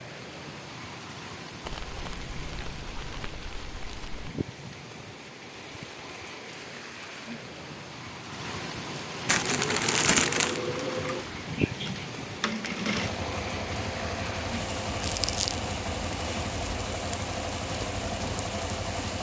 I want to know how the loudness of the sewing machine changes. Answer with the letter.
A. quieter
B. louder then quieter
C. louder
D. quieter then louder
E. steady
E.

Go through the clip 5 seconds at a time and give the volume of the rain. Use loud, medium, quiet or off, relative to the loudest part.
medium, loud, loud, loud.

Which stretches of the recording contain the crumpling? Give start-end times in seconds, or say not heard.
1.6-4.3, 9.2-10.6, 15.0-15.6.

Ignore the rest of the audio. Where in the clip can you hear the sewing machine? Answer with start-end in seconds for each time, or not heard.
9.3-19.1.